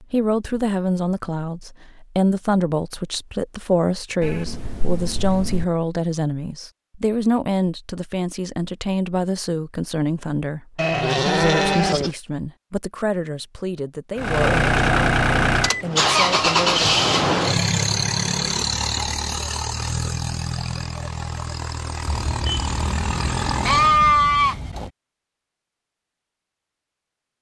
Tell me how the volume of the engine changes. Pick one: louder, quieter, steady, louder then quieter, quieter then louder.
quieter.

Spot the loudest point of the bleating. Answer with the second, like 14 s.
24 s.